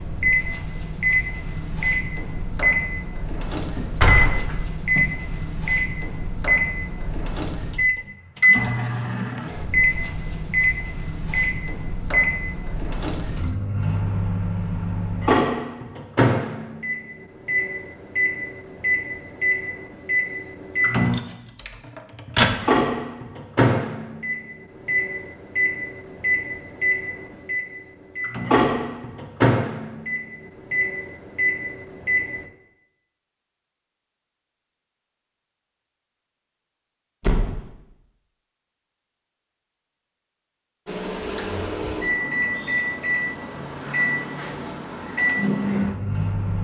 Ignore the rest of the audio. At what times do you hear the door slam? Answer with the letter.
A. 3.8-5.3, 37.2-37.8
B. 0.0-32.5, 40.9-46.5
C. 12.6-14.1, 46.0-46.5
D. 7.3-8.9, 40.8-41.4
A.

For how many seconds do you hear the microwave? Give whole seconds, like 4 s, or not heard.
38 s.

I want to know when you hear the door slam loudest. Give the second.
4 s.